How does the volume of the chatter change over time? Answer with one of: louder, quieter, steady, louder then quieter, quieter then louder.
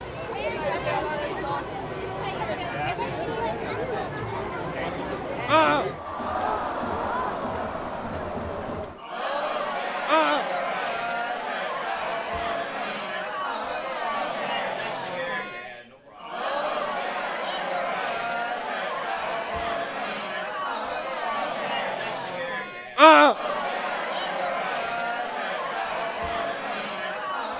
steady.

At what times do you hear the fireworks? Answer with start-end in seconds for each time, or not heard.
not heard.